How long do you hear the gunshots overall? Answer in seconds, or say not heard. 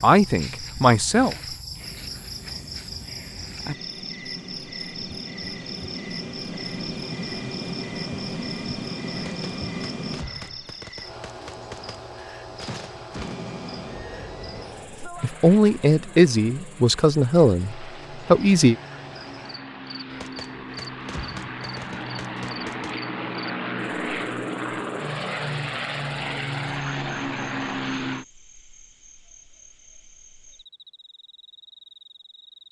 7 s.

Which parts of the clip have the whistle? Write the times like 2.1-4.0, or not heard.
not heard.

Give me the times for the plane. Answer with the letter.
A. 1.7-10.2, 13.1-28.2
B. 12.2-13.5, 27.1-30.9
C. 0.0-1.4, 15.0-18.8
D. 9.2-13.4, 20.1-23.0
A.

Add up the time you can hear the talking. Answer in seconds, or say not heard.
5 s.